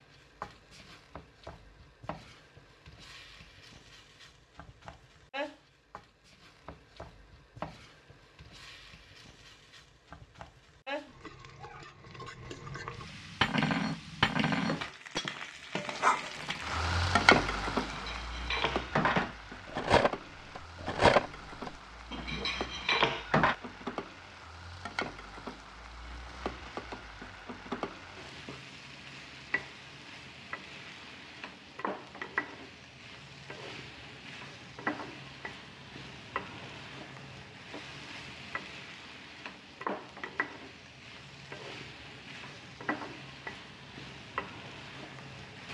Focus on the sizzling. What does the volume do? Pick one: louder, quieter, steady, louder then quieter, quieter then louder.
louder then quieter.